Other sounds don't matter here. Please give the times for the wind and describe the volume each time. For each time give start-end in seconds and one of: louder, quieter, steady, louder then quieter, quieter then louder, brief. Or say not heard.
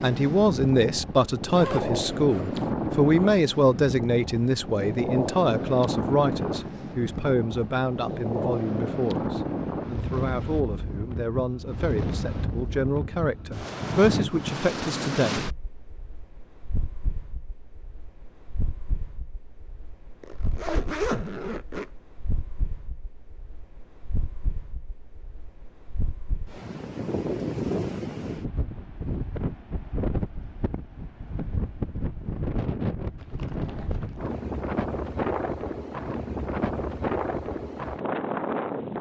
0.0-38.9 quieter then louder.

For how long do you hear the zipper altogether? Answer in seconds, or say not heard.
4 s.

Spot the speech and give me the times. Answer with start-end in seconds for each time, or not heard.
0.0-15.3.